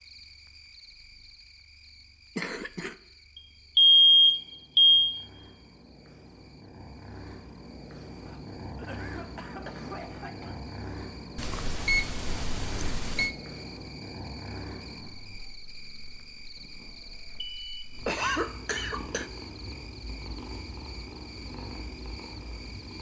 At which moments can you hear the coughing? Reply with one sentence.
You can hear the coughing from 2.4 to 3.0 s, from 8.2 to 10.6 s and from 18.1 to 19.3 s.